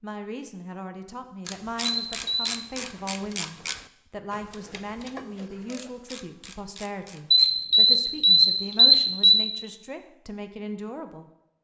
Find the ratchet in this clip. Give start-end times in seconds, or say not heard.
1.4-7.7.